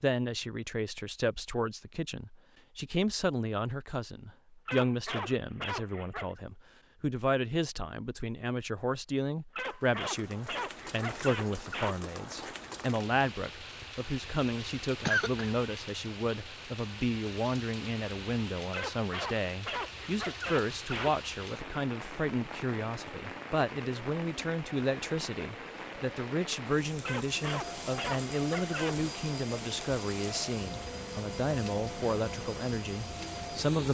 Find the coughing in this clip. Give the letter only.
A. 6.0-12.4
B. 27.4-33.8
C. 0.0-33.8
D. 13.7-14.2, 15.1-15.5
D.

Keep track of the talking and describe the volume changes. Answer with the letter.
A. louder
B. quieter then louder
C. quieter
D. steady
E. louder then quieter
D.